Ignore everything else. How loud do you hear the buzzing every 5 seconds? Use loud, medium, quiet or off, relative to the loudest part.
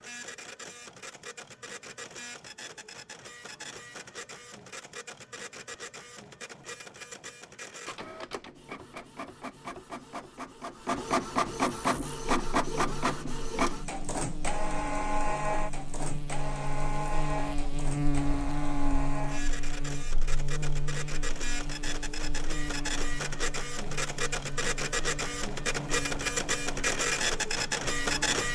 off, off, medium, loud, medium, medium.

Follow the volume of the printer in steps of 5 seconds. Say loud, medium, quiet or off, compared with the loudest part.
quiet, quiet, loud, medium, medium, loud.